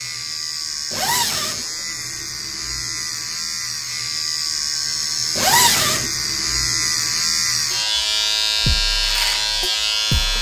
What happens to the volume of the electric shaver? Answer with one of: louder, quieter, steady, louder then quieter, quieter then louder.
louder.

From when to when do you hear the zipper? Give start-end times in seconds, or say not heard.
0.9-1.6, 5.3-6.1.